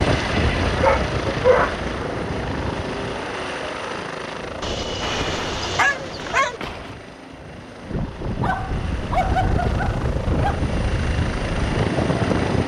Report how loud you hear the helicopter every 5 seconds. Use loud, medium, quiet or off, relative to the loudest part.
loud, medium, loud.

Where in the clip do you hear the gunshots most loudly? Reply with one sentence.
The loudest moment of the gunshots is at 5 seconds.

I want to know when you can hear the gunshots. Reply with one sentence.
You can hear the gunshots from 5.0 to 7.0 s.